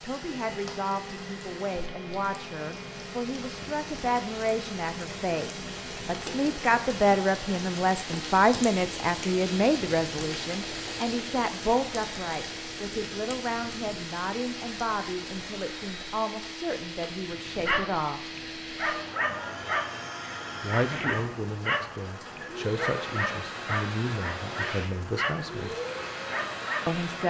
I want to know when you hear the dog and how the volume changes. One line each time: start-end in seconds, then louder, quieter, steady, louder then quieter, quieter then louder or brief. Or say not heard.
17.5-27.2 steady.